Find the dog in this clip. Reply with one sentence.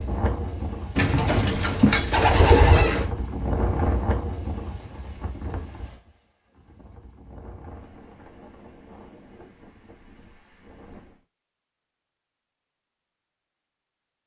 The dog can't be heard in this clip.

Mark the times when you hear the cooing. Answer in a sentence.
The cooing can be heard from 0.9 to 3.1 s.